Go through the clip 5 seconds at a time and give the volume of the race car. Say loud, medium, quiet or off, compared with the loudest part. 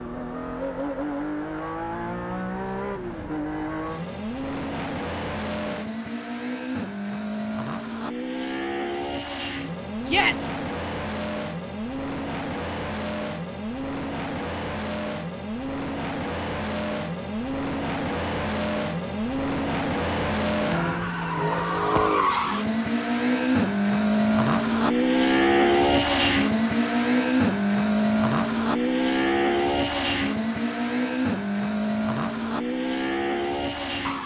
medium, medium, medium, medium, loud, loud, medium.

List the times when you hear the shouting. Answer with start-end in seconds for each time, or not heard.
10.1-10.6.